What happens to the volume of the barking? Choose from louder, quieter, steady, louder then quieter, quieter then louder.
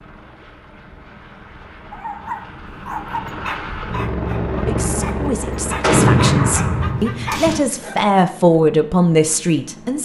quieter then louder.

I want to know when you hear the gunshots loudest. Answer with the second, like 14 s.
6 s.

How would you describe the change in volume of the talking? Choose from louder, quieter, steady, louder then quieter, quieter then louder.
louder.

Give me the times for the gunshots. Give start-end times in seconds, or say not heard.
5.8-7.6.